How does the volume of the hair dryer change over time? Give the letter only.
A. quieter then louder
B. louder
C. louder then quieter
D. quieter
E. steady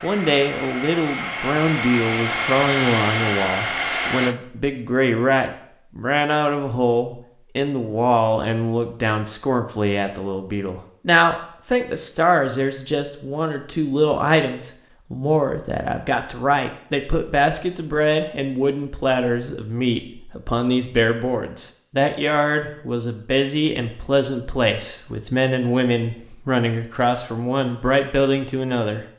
B.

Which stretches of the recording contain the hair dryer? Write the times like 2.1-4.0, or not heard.
0.0-4.3.